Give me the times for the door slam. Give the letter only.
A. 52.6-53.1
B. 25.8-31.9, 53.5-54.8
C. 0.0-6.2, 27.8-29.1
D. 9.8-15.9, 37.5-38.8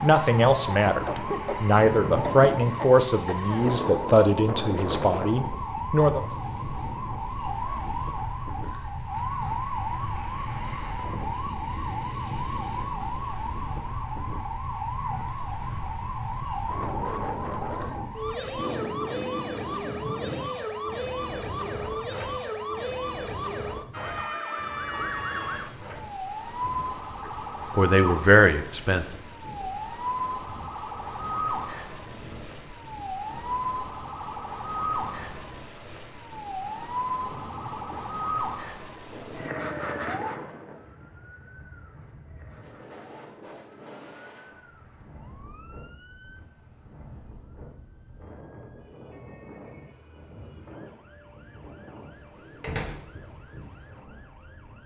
A.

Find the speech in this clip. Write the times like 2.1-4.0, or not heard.
0.0-6.2, 27.8-29.1.